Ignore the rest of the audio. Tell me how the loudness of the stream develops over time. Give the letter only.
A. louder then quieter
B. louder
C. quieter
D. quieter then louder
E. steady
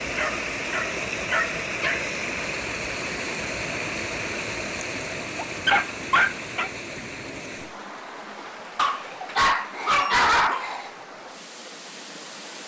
C.